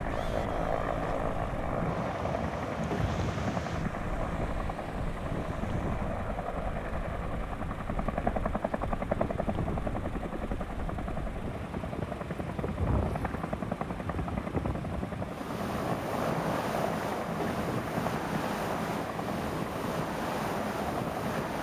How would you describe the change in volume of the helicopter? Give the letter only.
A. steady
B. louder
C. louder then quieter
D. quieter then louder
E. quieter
A.